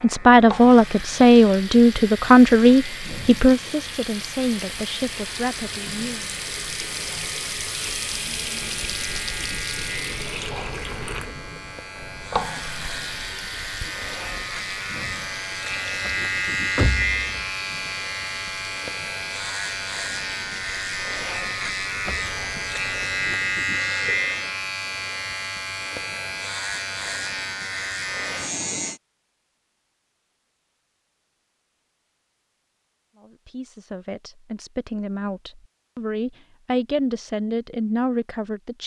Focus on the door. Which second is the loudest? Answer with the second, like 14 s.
17 s.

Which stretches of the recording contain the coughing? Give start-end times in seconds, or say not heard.
not heard.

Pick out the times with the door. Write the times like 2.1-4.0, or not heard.
16.1-17.4, 22.1-22.6.